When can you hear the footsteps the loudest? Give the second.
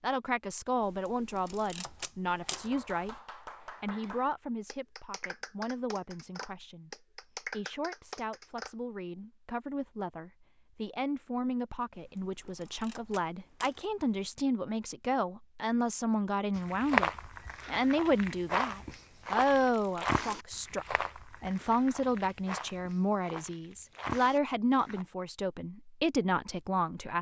17 s.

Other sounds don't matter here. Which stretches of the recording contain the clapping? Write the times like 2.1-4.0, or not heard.
2.4-8.8.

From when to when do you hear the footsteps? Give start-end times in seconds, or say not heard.
16.6-25.1.